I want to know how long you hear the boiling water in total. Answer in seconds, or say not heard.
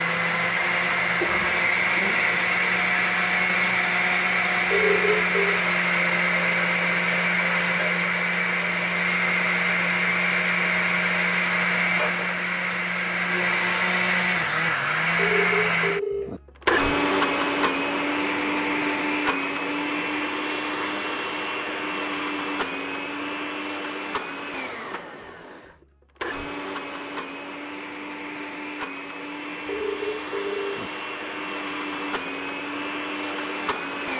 not heard.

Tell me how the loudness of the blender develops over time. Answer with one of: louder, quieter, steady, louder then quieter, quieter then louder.
quieter.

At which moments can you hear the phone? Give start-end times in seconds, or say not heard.
4.7-5.6, 15.2-16.4, 29.6-30.9.